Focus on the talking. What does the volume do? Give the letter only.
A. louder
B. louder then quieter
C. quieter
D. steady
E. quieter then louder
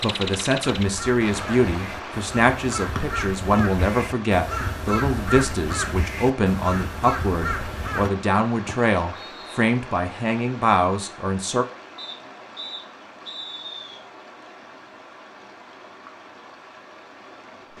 D.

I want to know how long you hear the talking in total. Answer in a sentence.
The talking can be heard for 12 seconds in total.